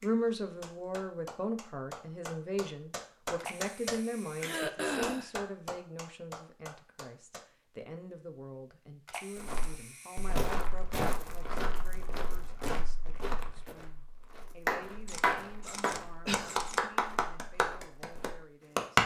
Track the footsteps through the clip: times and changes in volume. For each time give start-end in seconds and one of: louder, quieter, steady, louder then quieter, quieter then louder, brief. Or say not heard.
9.3-18.4 quieter.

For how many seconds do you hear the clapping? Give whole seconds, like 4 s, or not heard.
12 s.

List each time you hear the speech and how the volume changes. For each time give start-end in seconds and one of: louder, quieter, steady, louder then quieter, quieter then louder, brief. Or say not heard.
0.0-19.0 quieter.